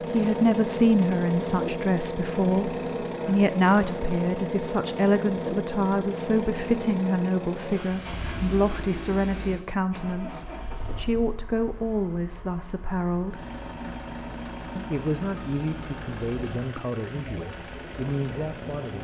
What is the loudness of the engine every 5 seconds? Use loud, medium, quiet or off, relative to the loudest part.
loud, loud, medium, medium.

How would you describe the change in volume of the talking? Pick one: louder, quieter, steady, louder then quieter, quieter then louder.
quieter.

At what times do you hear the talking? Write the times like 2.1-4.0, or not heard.
0.1-13.4, 14.8-19.0.